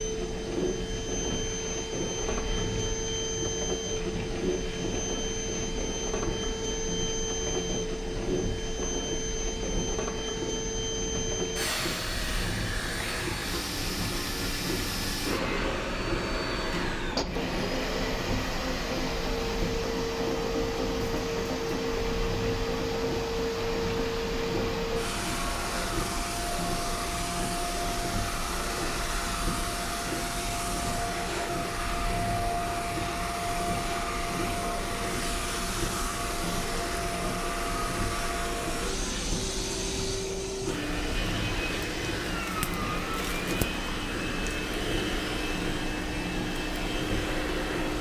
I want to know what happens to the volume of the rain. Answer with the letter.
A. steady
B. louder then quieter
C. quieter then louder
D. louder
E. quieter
A.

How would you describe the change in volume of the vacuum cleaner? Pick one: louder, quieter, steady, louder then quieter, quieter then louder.
steady.